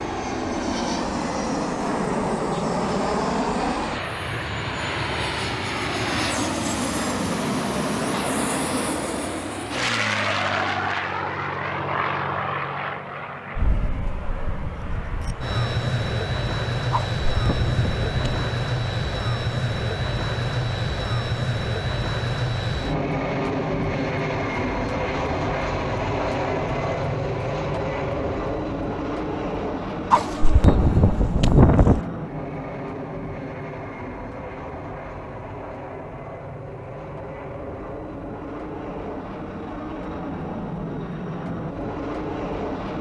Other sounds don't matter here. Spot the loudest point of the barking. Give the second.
32 s.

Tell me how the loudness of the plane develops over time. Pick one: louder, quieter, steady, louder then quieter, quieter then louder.
quieter.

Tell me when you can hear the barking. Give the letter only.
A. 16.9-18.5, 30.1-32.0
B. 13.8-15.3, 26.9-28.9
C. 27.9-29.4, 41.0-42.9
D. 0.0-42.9
A.